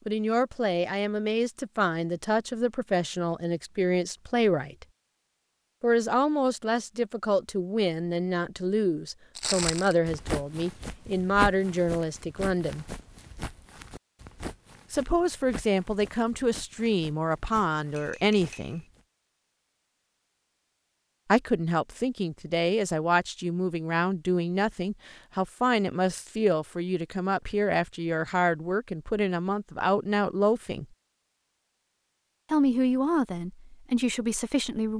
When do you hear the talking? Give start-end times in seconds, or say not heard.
0.1-4.8, 5.8-12.8, 14.9-18.9, 21.2-30.9, 32.5-34.9.